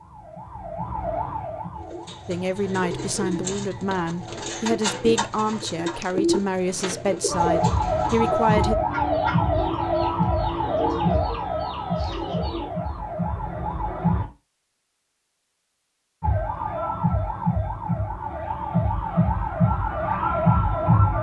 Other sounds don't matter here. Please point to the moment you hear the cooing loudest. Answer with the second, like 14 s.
6 s.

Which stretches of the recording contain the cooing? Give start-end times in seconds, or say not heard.
1.8-12.9.